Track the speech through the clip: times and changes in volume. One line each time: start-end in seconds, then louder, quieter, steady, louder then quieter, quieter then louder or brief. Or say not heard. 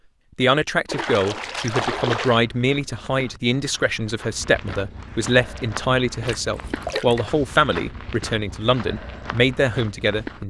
0.3-10.4 steady.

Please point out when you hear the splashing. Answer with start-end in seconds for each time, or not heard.
0.8-2.4, 6.2-7.2.